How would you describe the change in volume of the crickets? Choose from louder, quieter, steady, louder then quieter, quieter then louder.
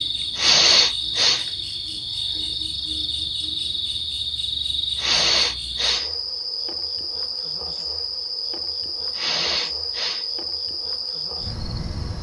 steady.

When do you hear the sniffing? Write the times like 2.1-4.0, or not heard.
0.3-1.4, 5.0-6.1, 9.2-10.2.